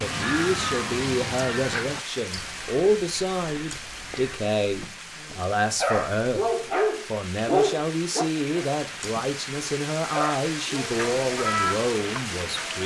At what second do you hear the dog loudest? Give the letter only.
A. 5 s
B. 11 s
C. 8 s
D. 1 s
C.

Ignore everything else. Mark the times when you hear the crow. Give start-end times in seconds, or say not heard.
0.0-4.4, 10.9-12.8.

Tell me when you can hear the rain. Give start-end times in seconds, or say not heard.
0.0-12.8.